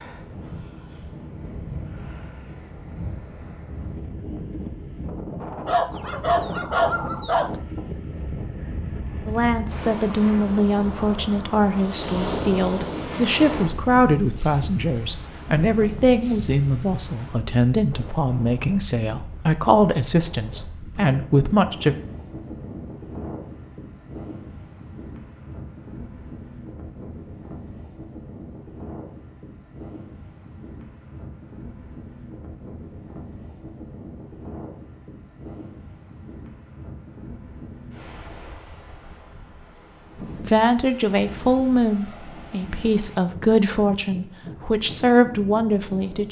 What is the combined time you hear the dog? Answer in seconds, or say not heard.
2 s.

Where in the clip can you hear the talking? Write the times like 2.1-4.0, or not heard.
9.2-21.9, 40.4-46.2.